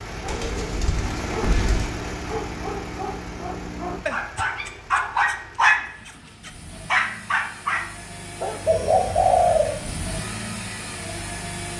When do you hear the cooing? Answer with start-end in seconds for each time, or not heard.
0.2-1.9, 8.7-9.8.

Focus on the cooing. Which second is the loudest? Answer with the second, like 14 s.
9 s.